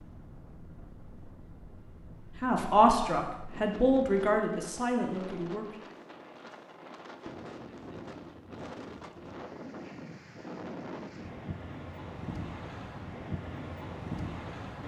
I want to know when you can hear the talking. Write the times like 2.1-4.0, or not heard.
2.4-5.8.